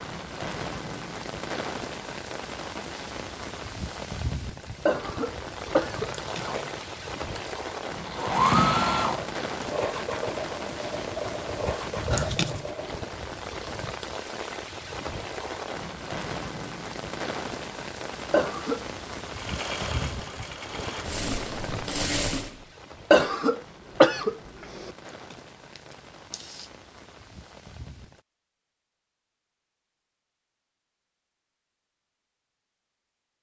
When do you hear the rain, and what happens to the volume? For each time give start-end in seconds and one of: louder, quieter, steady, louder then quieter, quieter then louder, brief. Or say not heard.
0.0-28.2 quieter.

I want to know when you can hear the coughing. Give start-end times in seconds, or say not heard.
4.8-6.1, 18.3-18.9, 23.1-24.9.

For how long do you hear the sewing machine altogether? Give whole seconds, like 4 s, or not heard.
10 s.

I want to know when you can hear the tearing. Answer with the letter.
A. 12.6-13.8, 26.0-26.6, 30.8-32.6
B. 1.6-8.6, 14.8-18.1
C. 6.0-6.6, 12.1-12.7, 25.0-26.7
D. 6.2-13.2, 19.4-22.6
C.